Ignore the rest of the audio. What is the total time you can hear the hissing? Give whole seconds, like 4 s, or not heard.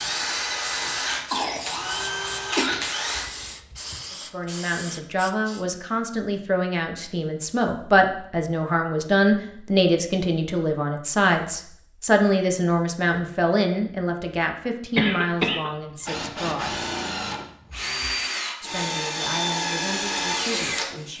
6 s.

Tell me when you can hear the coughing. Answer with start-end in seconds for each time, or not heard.
1.3-3.0, 14.9-15.7.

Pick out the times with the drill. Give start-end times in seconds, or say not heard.
0.0-3.3, 15.9-21.1.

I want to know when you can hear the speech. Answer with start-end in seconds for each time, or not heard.
4.1-16.8, 18.6-21.1.